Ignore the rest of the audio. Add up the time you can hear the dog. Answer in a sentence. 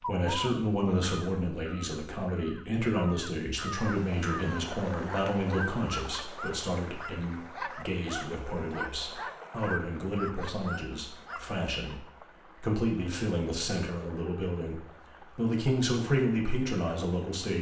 The dog can be heard for 7 seconds in total.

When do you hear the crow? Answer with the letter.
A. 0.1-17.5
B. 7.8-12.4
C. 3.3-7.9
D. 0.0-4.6
D.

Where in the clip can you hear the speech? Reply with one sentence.
You can hear the speech from 0.1 to 17.5 s.